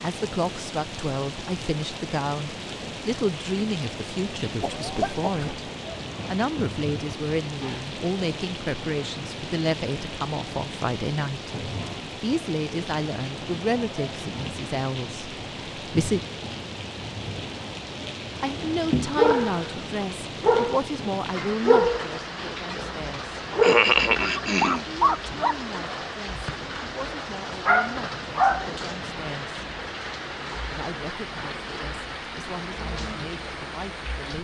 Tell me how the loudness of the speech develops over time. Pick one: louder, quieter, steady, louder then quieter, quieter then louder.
quieter.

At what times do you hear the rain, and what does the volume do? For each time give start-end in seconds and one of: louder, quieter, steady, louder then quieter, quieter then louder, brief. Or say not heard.
0.0-34.3 steady.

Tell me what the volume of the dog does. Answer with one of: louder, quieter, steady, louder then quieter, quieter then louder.
quieter then louder.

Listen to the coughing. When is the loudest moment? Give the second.
24 s.